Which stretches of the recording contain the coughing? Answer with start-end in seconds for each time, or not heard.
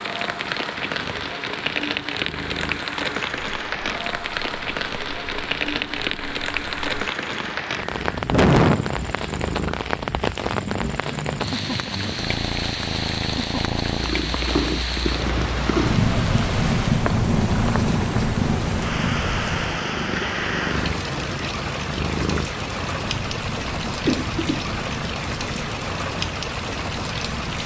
24.1-24.7.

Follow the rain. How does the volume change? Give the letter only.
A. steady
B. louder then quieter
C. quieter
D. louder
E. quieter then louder
A.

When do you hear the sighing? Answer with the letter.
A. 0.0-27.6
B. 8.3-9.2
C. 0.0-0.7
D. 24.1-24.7
B.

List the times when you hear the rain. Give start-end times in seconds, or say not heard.
0.0-27.6.